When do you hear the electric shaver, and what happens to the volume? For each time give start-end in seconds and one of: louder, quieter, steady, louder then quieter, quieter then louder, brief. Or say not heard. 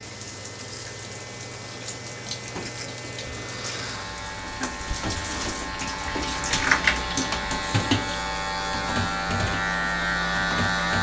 0.0-10.9 louder.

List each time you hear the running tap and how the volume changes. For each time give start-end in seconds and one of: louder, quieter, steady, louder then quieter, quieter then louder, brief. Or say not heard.
0.0-10.9 louder then quieter.